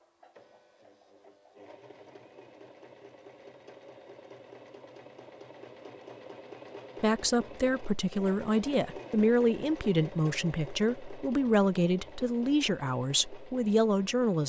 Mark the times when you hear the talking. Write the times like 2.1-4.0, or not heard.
7.0-14.4.